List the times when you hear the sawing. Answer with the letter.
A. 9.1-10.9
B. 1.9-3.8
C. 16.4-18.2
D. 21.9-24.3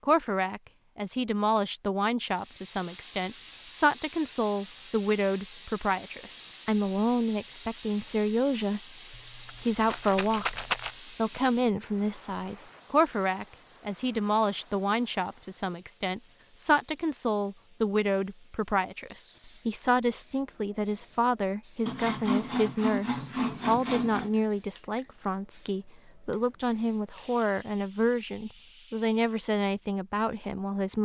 D.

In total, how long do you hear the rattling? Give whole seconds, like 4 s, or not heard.
2 s.